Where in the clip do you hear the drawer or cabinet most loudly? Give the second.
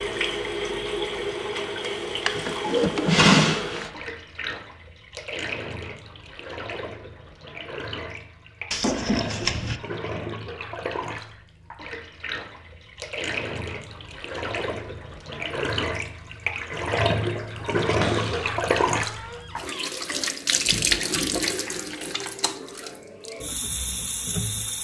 3 s.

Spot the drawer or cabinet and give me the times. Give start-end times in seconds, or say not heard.
1.8-3.9, 8.7-9.8, 17.9-19.9.